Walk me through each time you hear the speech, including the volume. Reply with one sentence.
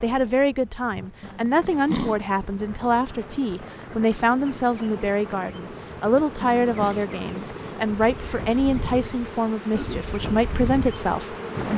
You can hear the speech from 0.0 to 11.7 s, at a steady volume.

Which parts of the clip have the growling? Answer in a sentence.
The growling can be heard from 1.2 to 2.1 s and from 6.4 to 7.0 s.